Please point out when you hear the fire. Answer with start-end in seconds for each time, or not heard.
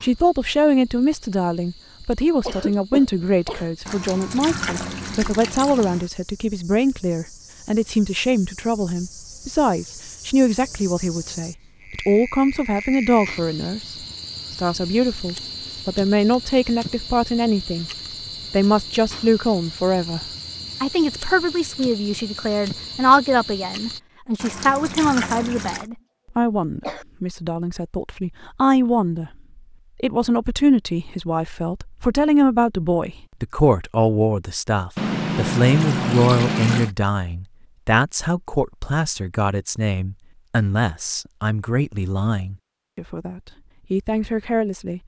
not heard.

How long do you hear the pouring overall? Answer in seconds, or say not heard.
6 s.